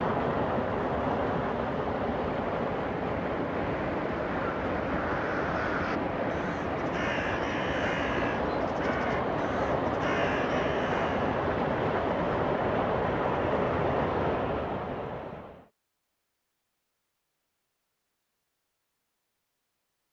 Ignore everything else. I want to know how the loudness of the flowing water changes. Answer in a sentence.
The loudness of the flowing water stays about the same.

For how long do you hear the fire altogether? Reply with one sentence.
The fire can't be heard in this clip.